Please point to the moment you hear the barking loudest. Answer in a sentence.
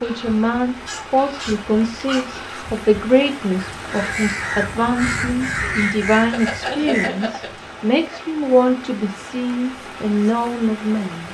The volume of the barking peaks at 7 seconds.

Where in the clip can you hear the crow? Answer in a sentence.
You can hear the crow from 0.0 to 7.1 s.